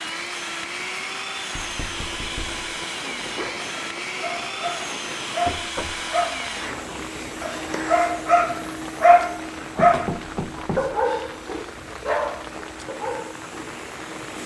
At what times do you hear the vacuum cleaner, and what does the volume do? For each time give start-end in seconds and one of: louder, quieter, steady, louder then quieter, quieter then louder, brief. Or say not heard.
0.0-14.4 quieter.